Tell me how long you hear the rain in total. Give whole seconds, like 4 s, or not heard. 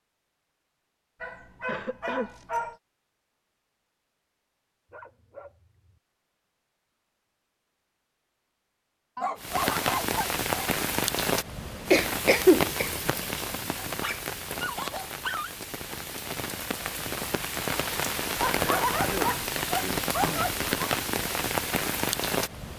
13 s.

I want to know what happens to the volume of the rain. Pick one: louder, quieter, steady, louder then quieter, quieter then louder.
quieter then louder.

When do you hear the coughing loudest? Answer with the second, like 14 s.
12 s.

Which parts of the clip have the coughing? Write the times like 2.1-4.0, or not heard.
1.6-2.3, 11.9-13.1, 18.6-20.5.